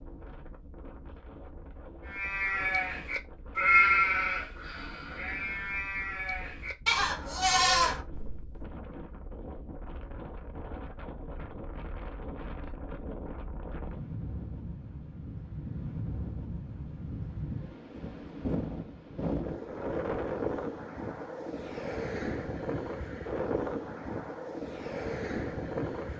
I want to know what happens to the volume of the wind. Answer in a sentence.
The volume of the wind goes up.